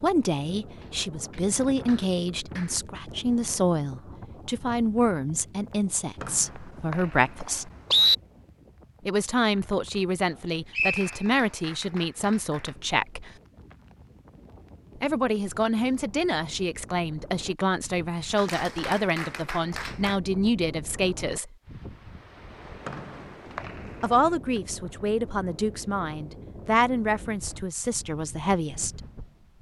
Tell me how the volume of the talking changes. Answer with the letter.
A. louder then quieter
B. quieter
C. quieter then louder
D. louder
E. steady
E.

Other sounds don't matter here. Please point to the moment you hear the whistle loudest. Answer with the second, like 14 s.
8 s.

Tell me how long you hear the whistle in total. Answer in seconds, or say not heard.
4 s.